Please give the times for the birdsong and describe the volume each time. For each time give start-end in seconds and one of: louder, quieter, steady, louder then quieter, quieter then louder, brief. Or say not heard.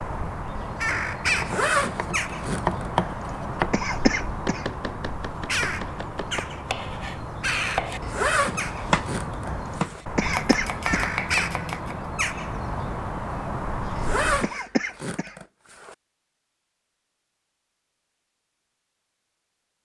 0.0-14.6 steady.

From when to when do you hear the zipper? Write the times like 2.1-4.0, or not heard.
1.4-2.8, 8.0-10.0, 13.9-15.9.